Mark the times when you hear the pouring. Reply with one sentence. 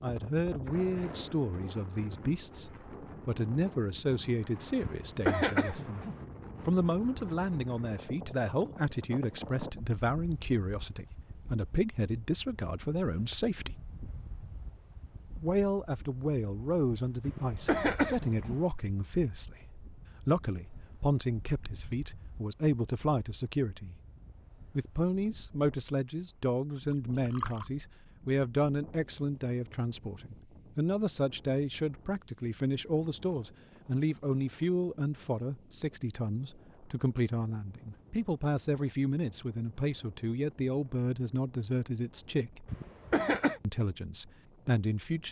The pouring can be heard from 26.8 to 27.7 s.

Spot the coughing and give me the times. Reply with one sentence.
You can hear the coughing from 4.8 to 6.2 s, from 17.2 to 18.6 s and from 42.6 to 43.6 s.